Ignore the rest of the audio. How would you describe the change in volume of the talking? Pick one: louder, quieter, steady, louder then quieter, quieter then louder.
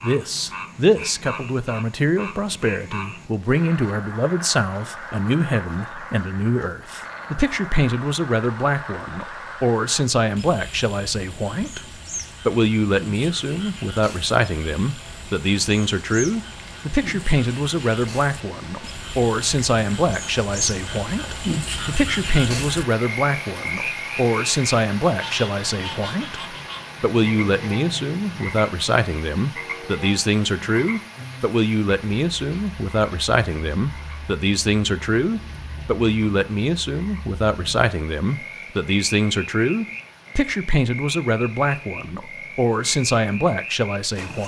steady.